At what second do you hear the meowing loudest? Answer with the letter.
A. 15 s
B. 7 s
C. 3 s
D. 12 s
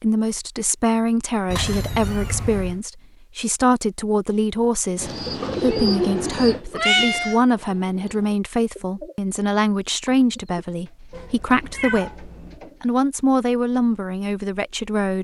B.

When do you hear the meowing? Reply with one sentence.
The meowing can be heard from 1.5 to 2.8 s, from 5.7 to 7.4 s and from 11.1 to 12.6 s.